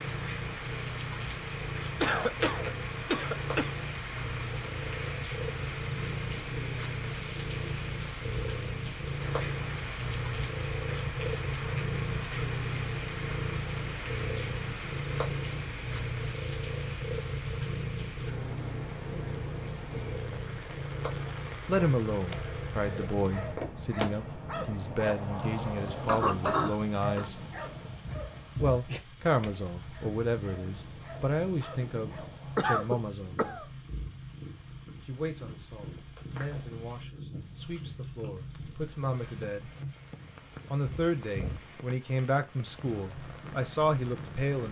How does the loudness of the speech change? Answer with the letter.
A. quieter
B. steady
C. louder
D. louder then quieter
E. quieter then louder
E.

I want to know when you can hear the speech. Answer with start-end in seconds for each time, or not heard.
21.6-27.4, 28.6-33.4, 35.0-39.7, 40.6-44.6.